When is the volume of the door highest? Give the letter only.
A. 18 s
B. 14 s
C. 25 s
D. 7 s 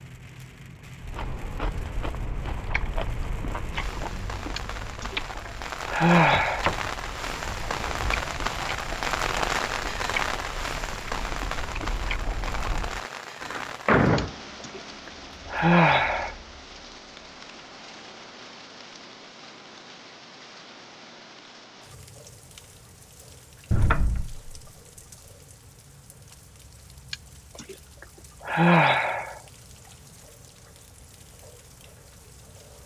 B.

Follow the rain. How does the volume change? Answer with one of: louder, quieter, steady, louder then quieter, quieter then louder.
louder then quieter.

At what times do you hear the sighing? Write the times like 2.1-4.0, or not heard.
4.5-5.2, 5.8-6.7, 14.2-14.8, 15.5-16.4, 27.1-27.8, 28.4-29.4.